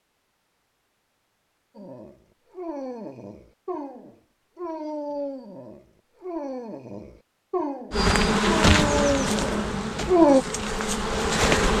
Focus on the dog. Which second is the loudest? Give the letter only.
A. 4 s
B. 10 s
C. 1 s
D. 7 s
B.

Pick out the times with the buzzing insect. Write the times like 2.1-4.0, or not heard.
7.9-11.7.